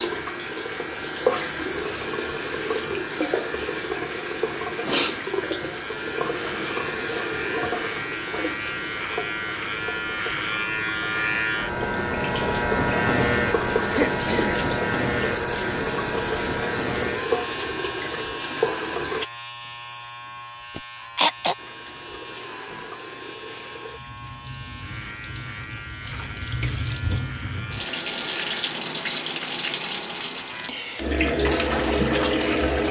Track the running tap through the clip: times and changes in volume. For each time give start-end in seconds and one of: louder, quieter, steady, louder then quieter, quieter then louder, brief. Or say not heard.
0.0-19.2 quieter then louder
21.6-32.8 louder.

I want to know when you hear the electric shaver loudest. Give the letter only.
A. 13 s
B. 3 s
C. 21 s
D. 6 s
A.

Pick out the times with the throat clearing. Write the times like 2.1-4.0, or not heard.
13.9-14.7, 20.8-21.6.